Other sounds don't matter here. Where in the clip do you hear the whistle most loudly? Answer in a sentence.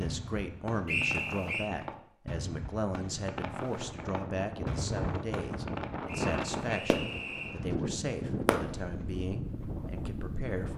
The volume of the whistle peaks at 1 second.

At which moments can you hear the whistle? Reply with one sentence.
You can hear the whistle from 0.8 to 1.7 s and from 6.0 to 7.5 s.